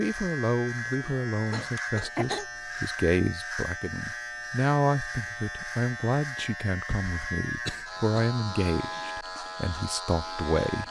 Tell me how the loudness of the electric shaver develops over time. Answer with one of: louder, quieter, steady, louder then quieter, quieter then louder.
steady.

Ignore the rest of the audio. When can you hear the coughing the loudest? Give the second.
2 s.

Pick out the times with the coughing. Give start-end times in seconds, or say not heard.
1.0-2.5, 6.9-8.3.